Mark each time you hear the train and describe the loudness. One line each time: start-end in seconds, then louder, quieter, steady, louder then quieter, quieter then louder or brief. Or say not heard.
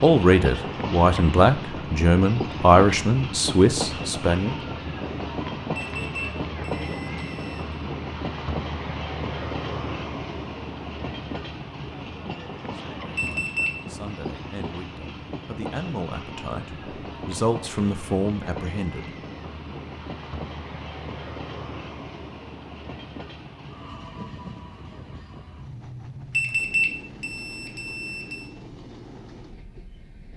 0.0-30.3 quieter.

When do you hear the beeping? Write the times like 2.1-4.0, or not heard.
5.8-7.8, 13.2-13.8, 26.3-28.4.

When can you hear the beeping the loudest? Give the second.
27 s.